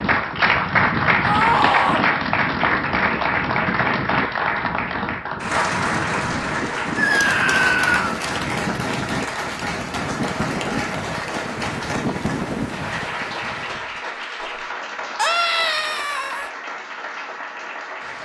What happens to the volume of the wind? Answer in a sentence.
The volume of the wind stays about the same.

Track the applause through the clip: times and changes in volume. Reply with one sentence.
You can hear the applause from 0.0 to 18.2 s, getting quieter.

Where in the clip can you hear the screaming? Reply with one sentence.
You can hear the screaming from 1.2 to 2.0 s, from 7.0 to 8.2 s and from 15.2 to 16.5 s.